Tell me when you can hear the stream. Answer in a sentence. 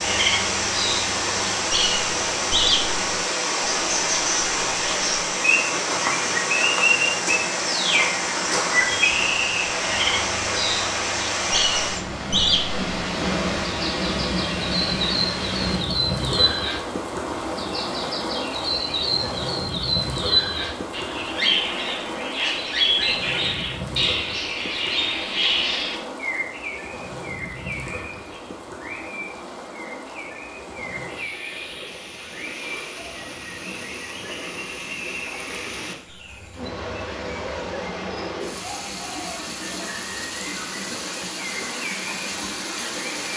The stream can be heard from 0.0 to 43.3 s.